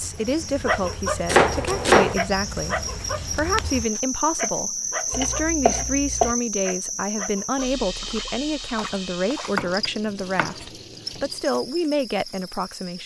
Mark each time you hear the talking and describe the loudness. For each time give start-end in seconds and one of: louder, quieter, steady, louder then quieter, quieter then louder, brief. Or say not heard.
0.0-13.0 steady.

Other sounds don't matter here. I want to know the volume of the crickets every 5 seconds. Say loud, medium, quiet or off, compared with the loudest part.
loud, loud, medium.